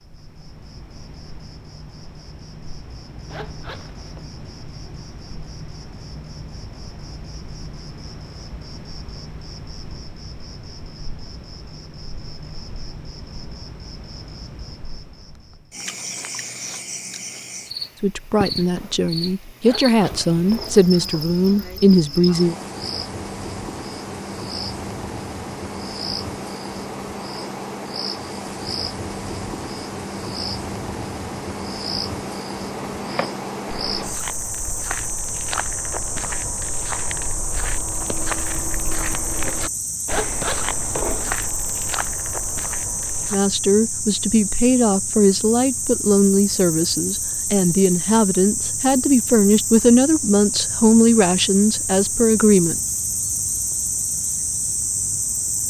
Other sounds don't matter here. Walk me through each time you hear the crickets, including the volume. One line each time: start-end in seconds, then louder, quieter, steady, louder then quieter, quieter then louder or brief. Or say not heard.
0.0-55.6 louder.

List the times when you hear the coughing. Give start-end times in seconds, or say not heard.
not heard.